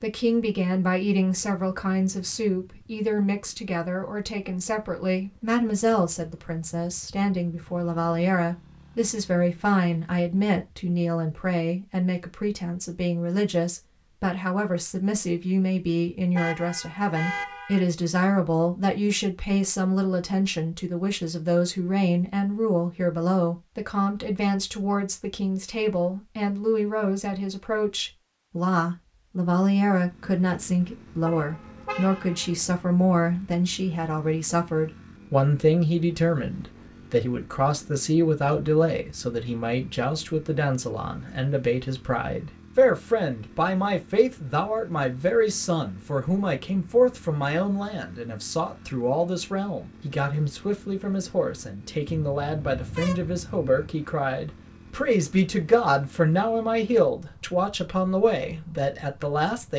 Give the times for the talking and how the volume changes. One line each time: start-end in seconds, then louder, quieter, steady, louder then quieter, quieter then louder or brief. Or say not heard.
0.0-59.7 steady.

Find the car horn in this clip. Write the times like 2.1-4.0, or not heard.
16.4-17.9, 31.2-32.5, 52.0-53.7.